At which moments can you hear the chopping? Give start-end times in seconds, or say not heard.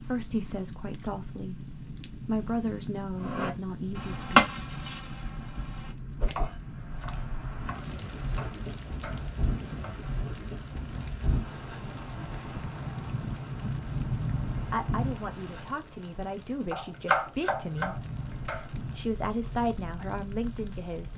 3.2-10.0, 16.7-18.7.